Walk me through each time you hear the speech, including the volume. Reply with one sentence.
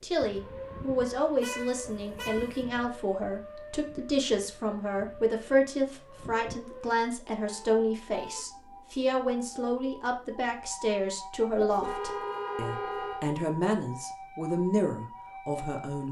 The speech can be heard from 0.0 to 16.0 s, at a steady volume.